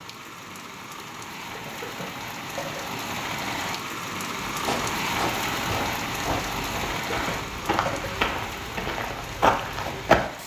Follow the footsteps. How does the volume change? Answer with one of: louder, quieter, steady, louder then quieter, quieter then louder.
louder.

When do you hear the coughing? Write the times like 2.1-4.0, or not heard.
1.6-3.0, 7.0-8.2.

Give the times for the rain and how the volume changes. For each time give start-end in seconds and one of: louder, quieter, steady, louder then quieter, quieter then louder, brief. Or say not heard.
0.0-10.4 louder then quieter.